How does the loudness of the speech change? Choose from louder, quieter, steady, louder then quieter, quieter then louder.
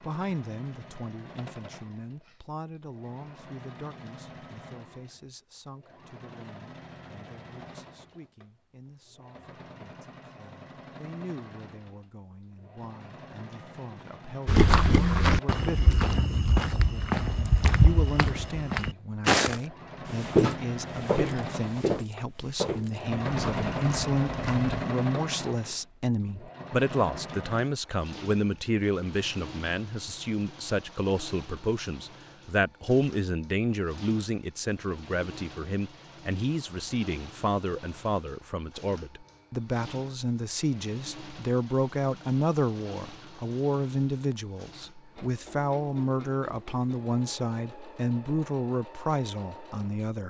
louder.